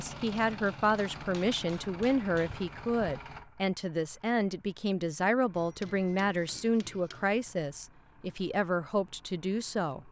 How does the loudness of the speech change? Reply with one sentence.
The volume of the speech stays about the same.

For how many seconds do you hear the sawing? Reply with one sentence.
You can't hear the sawing here.